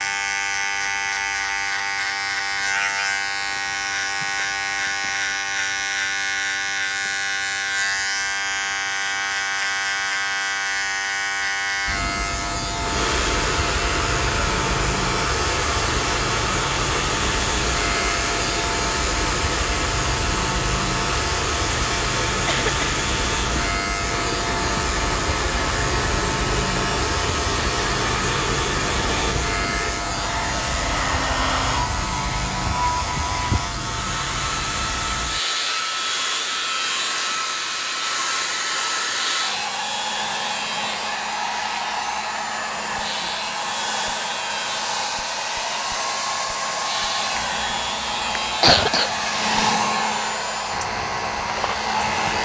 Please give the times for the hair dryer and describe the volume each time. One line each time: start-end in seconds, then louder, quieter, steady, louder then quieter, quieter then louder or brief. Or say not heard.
12.7-52.4 steady.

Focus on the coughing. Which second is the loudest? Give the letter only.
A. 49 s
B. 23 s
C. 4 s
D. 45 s
A.